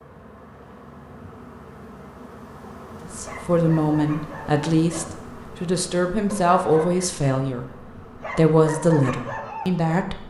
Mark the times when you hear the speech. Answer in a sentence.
The speech can be heard from 3.1 to 10.2 s.